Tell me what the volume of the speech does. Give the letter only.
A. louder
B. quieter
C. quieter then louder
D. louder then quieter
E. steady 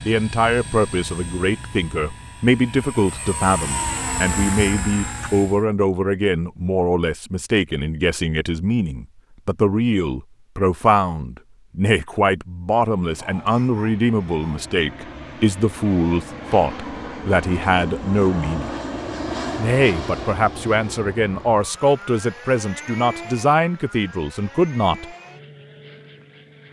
E.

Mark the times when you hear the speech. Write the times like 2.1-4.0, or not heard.
0.1-18.7, 19.6-25.1.